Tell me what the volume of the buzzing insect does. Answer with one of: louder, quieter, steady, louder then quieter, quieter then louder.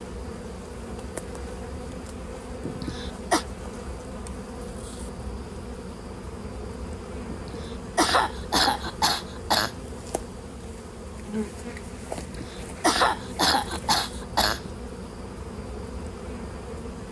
steady.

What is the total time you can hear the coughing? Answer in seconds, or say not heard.
6 s.